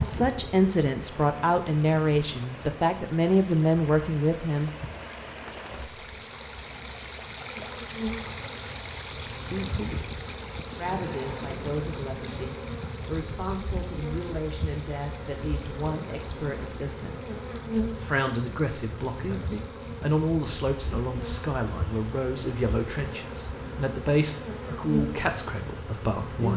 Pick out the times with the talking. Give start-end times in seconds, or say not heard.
0.0-4.7, 10.8-26.5.